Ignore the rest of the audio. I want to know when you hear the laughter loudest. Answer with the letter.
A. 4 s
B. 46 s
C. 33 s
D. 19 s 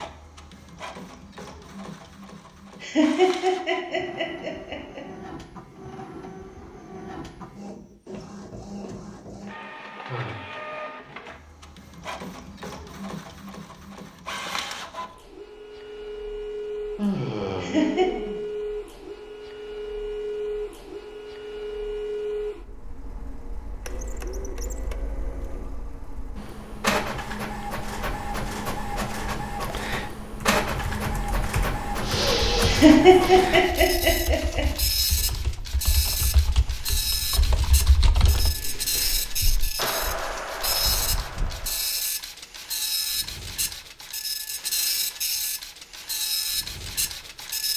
C.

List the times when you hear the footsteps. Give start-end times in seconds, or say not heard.
not heard.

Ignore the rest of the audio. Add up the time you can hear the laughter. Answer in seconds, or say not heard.
5 s.